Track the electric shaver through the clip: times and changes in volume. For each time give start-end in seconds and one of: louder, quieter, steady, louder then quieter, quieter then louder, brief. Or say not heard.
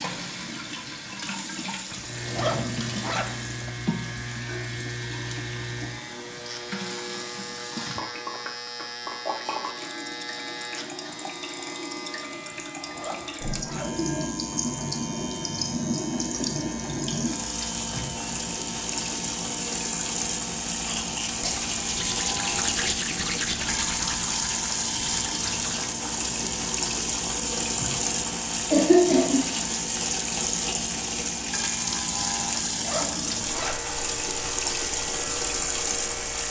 1.9-36.4 steady.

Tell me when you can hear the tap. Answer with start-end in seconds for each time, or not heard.
0.0-36.4.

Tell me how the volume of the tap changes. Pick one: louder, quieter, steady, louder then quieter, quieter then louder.
louder.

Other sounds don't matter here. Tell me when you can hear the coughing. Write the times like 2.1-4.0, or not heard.
28.7-29.5.